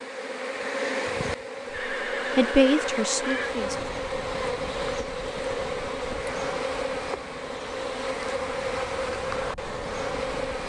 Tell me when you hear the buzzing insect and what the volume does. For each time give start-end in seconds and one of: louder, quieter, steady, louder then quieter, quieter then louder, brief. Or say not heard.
0.0-10.6 steady.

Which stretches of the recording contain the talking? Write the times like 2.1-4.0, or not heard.
2.4-3.8.